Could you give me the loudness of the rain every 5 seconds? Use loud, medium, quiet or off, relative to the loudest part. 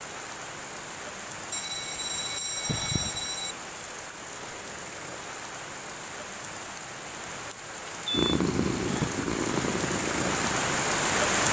quiet, medium, loud.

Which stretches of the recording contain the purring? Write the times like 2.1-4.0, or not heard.
8.1-11.3.